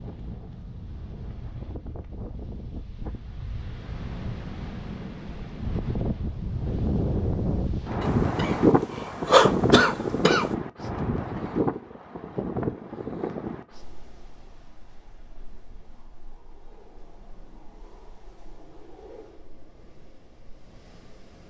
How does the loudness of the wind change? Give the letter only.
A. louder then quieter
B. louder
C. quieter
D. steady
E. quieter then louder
A.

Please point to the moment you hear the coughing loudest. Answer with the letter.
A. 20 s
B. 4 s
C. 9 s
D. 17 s
C.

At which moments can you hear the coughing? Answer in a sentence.
The coughing can be heard from 8.0 to 10.4 s.